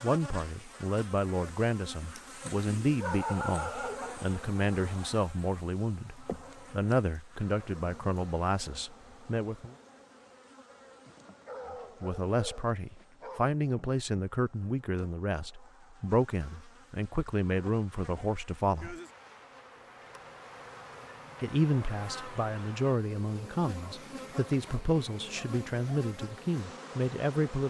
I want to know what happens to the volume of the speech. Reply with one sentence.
The loudness of the speech stays about the same.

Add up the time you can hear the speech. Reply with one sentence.
The speech can be heard for 23 seconds in total.